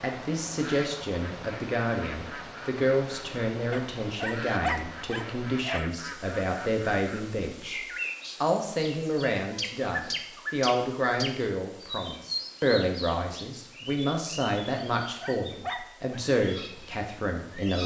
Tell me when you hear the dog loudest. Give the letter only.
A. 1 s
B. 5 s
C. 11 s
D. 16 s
B.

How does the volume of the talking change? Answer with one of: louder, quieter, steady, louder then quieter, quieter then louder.
steady.